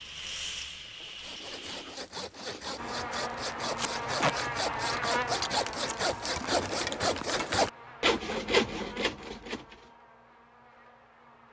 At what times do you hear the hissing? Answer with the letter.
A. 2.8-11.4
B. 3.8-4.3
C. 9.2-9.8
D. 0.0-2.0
D.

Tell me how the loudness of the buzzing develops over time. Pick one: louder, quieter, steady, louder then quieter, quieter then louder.
quieter.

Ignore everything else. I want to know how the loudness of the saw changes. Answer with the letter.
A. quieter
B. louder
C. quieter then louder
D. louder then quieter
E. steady
B.